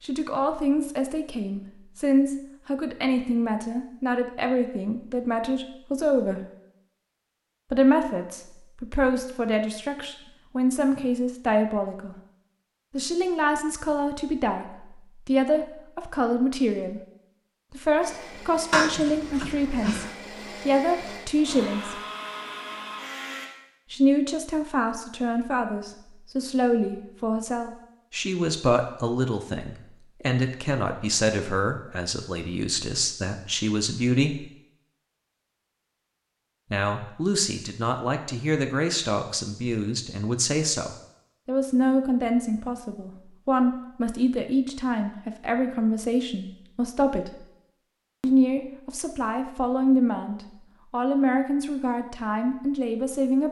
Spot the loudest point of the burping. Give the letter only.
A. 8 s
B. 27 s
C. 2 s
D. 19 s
D.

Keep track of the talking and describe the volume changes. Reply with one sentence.
The volume of the talking stays about the same.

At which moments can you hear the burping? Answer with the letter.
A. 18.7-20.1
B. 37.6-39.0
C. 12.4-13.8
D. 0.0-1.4
A.